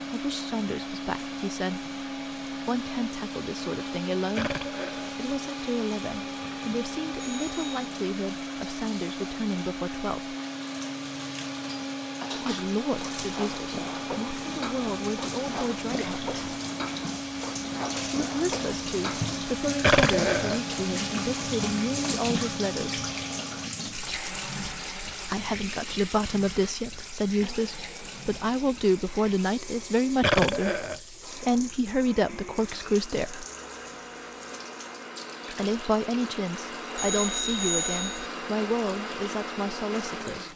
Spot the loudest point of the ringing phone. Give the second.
38 s.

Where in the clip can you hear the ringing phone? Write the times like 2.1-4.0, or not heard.
7.2-7.9, 37.0-38.3.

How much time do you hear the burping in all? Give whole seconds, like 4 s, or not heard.
2 s.